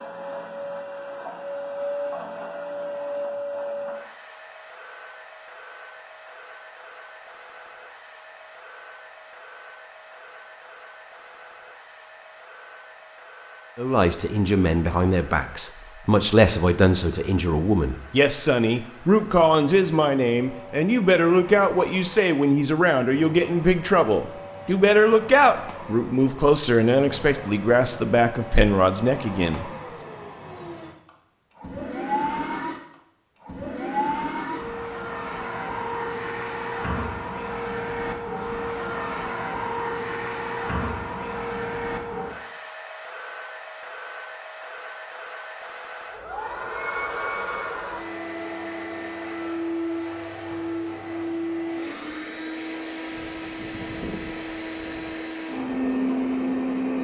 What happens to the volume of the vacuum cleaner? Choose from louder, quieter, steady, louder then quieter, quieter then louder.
quieter then louder.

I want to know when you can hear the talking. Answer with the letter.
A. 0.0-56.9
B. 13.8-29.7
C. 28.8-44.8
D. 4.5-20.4
B.